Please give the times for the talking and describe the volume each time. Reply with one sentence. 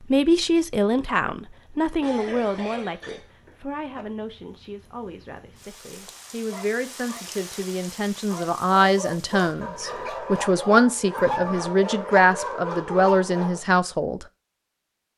The talking can be heard from 0.1 to 14.2 s, getting quieter then louder.